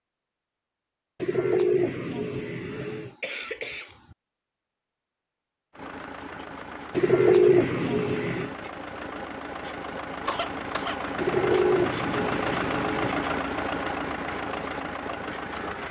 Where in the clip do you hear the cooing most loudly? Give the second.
7 s.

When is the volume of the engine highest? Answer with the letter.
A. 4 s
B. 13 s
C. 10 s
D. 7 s
B.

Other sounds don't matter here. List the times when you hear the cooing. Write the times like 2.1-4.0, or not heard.
1.2-3.1, 6.9-8.5, 11.2-13.2.